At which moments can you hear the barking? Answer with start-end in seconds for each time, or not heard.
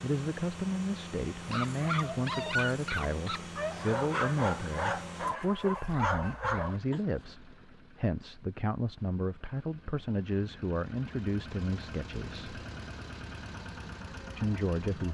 1.4-7.2.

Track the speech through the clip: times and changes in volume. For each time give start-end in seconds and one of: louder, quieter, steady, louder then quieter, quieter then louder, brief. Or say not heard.
0.0-12.6 steady
14.3-15.1 brief.